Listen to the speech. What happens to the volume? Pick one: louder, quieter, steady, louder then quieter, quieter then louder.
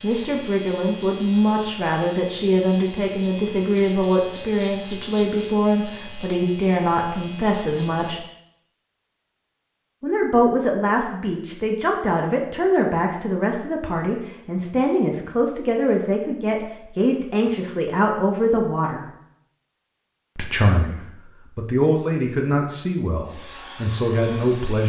steady.